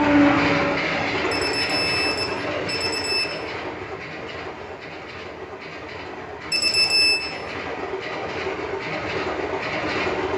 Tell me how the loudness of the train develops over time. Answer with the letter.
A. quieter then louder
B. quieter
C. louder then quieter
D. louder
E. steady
A.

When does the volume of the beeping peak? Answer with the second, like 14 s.
7 s.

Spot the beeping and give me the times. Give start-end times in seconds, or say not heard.
1.3-3.2, 6.5-7.2.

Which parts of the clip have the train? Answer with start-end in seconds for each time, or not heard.
0.0-10.3.